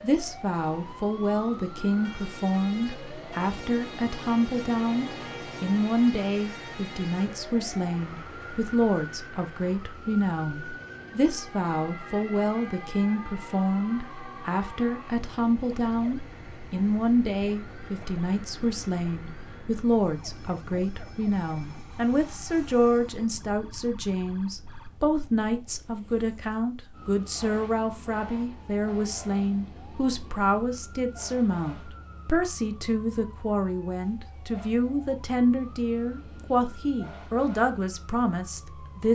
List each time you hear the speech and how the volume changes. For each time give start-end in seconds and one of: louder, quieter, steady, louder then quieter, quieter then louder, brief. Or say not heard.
0.0-39.1 steady.